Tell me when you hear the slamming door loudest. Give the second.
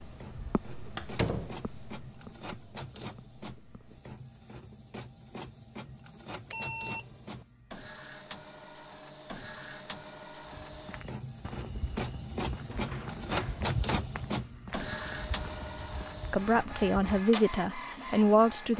1 s.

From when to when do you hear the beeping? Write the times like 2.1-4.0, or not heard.
6.5-7.5.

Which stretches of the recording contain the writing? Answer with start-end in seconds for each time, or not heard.
0.0-4.2.